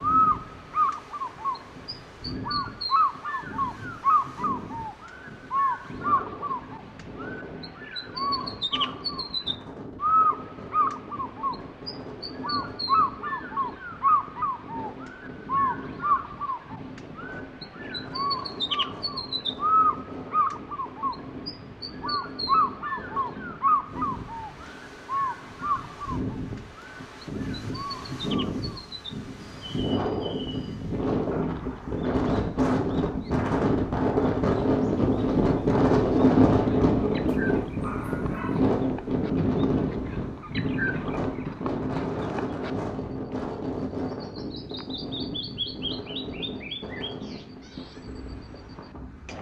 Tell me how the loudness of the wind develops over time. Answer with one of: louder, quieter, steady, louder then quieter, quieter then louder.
louder then quieter.